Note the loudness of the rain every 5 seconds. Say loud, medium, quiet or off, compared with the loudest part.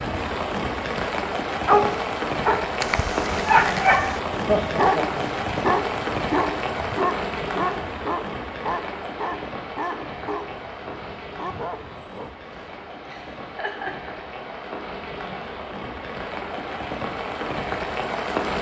loud, loud, medium, loud.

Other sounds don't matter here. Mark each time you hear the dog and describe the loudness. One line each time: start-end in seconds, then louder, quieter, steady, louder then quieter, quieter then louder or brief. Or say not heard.
1.6-12.8 quieter.